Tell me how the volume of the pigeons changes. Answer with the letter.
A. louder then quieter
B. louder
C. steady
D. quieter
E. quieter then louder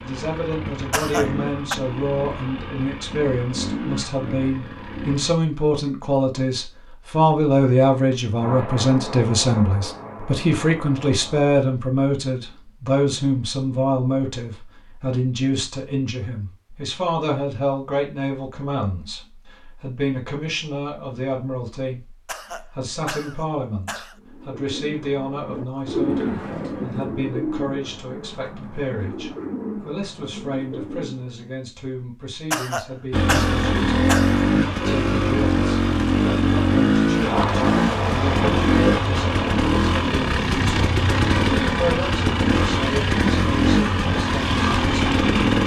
A.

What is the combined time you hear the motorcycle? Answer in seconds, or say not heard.
18 s.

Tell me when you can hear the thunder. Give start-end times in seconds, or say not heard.
8.3-11.5, 37.2-39.7.